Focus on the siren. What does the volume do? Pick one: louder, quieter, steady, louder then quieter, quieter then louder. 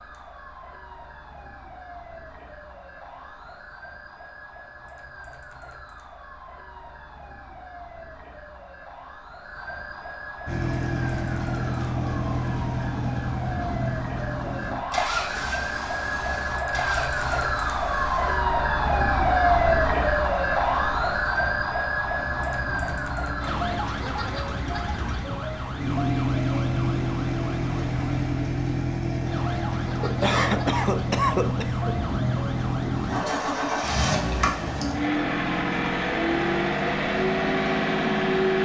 louder then quieter.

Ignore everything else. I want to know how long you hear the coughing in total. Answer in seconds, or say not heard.
2 s.